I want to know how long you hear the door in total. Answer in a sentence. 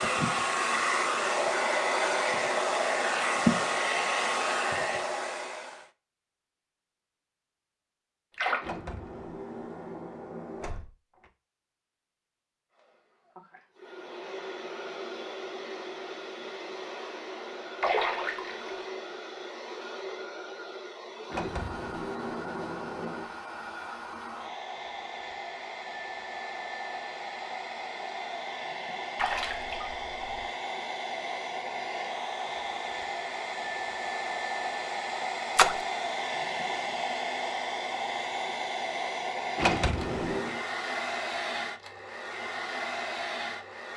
The door can be heard for 6 seconds in total.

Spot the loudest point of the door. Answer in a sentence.
The loudest moment of the door is at 40 seconds.